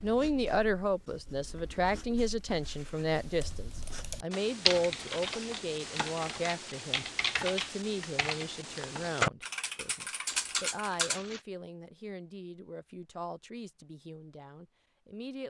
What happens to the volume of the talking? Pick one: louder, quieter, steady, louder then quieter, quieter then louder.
quieter.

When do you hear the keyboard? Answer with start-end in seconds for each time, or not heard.
3.0-11.2.